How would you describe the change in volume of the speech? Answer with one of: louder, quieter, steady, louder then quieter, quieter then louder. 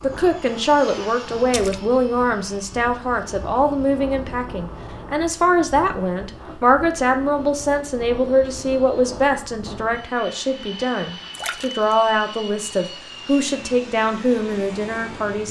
steady.